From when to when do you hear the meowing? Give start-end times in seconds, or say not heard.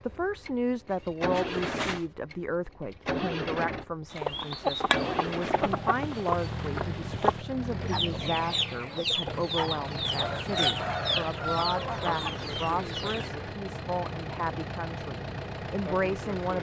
0.9-2.0.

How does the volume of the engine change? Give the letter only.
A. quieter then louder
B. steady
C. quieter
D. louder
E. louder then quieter
B.